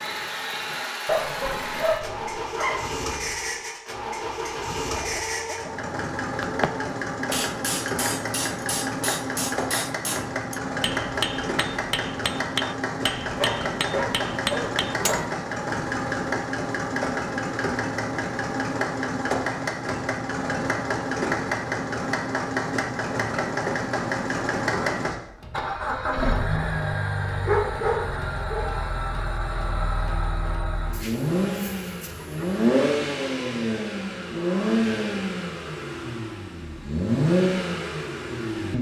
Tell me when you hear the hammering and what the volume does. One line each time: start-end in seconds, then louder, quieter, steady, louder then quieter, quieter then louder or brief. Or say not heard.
7.3-15.3 steady.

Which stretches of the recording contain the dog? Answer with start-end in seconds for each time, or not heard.
1.1-2.8, 13.3-15.2, 27.4-28.6.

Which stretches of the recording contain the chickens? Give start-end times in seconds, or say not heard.
4.9-6.9, 30.9-32.6.